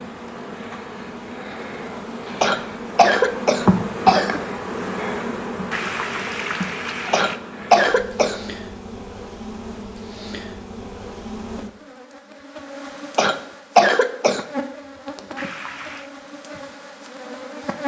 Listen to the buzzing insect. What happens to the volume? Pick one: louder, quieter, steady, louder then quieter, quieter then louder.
quieter.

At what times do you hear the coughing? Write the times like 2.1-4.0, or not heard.
2.4-4.4, 7.1-8.4, 13.2-14.4.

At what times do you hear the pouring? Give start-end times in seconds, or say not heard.
5.7-7.4, 15.3-16.1.